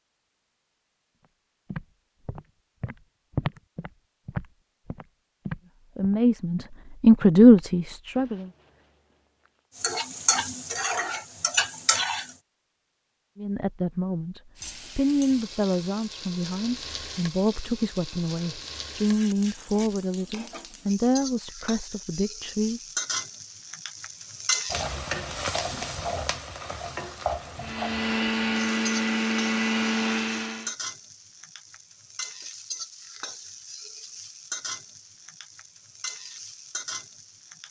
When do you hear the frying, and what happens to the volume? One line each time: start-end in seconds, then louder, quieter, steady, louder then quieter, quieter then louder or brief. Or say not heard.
9.8-12.4 brief
14.6-37.6 louder then quieter.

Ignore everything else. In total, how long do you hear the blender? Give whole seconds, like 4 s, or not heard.
3 s.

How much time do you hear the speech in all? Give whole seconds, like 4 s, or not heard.
12 s.